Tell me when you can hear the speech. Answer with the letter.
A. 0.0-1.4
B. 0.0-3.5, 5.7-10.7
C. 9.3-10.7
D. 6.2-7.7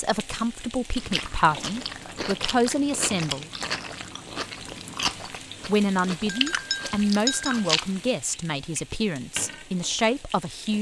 B.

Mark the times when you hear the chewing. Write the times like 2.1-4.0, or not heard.
0.9-8.1.